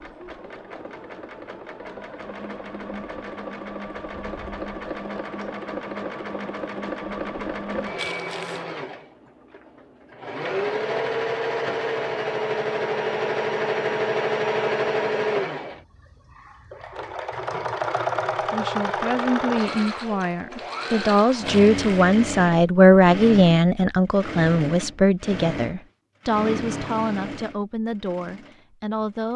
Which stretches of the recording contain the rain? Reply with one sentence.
You can't hear the rain here.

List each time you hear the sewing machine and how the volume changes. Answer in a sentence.
You can hear the sewing machine from 0.0 to 29.3 s, getting louder then quieter.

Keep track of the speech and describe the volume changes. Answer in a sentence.
The volume of the speech goes up, then down.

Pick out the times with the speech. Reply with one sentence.
You can hear the speech from 18.5 to 29.3 s.